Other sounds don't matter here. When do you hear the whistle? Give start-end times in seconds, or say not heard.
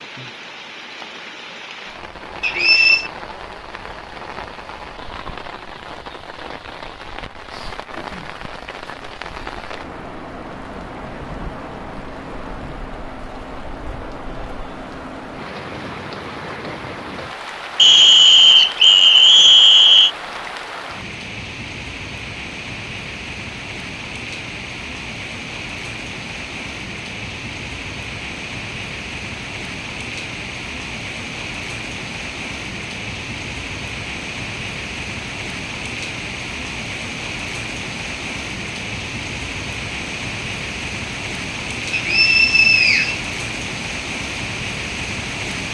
2.4-3.1, 17.8-20.1, 41.9-43.1.